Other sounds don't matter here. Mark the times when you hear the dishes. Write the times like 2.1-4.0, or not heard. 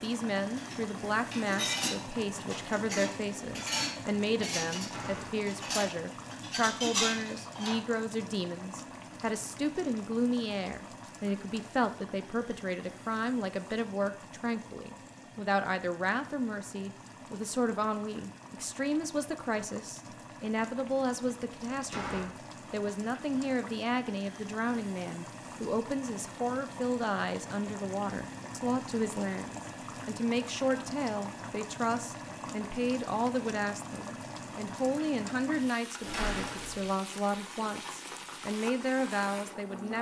0.6-7.8.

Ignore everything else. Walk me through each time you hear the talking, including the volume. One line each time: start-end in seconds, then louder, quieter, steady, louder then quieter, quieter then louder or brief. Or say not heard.
0.0-39.9 steady.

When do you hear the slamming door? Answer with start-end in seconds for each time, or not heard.
4.8-5.5, 21.7-22.3, 36.0-36.9.